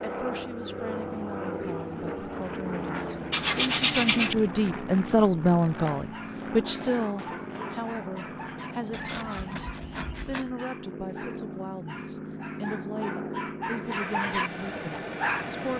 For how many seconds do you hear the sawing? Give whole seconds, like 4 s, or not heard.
3 s.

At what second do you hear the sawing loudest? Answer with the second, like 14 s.
4 s.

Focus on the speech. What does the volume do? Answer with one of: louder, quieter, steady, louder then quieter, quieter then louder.
louder then quieter.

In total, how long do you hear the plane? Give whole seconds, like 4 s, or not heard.
16 s.